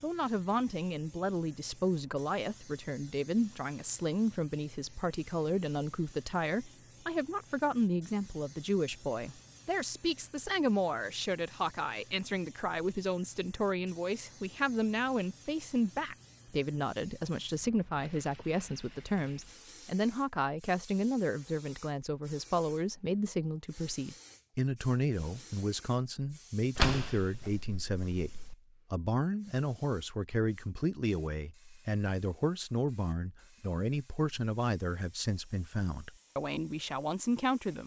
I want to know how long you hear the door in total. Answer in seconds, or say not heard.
2 s.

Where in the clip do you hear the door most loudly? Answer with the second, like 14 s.
27 s.